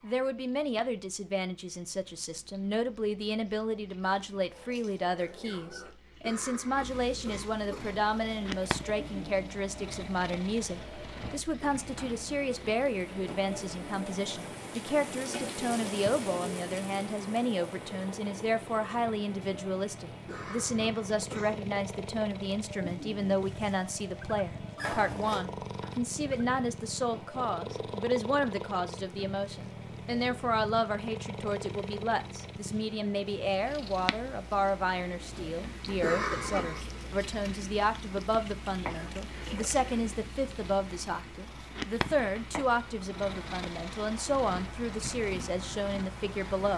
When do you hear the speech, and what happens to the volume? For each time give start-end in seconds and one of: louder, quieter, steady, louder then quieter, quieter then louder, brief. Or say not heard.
0.0-46.7 steady.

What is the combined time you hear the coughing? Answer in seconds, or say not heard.
4 s.